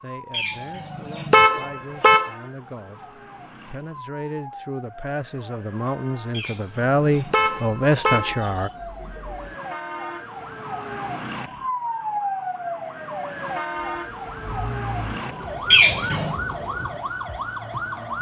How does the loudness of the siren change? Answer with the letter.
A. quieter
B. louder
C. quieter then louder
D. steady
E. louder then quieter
B.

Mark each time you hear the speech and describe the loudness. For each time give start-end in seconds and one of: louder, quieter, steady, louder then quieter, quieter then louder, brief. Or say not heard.
0.0-8.7 louder.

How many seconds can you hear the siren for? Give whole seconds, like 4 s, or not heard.
18 s.